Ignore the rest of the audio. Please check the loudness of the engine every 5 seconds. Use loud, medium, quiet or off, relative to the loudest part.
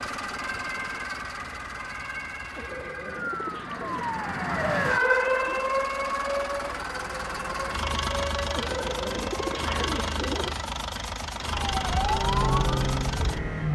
medium, loud, loud.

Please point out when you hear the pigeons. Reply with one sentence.
The pigeons can be heard from 2.5 to 4.2 s and from 8.6 to 10.6 s.